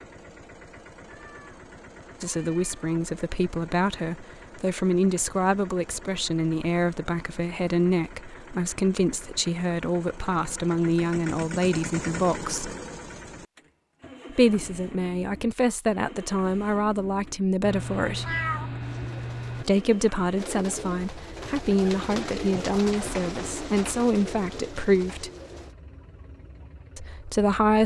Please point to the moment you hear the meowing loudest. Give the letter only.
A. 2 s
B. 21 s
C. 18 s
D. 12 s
C.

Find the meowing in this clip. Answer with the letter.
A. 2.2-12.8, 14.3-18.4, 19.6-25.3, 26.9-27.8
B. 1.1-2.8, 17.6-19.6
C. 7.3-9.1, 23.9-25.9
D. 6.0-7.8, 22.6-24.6
B.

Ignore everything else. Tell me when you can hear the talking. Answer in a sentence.
You can hear the talking from 2.2 to 12.8 s, from 14.3 to 18.4 s, from 19.6 to 25.3 s and from 26.9 to 27.8 s.